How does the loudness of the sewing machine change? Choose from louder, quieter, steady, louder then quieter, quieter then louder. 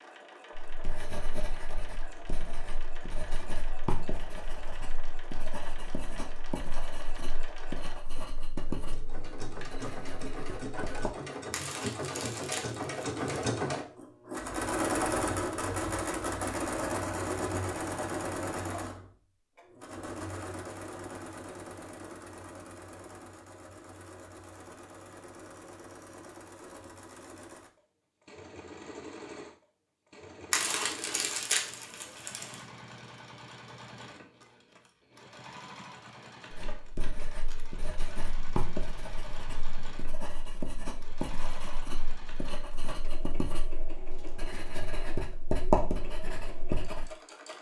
louder then quieter.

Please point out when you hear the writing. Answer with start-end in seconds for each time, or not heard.
0.6-11.2, 36.5-47.1.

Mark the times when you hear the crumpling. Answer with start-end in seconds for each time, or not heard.
11.5-13.4, 30.5-32.6.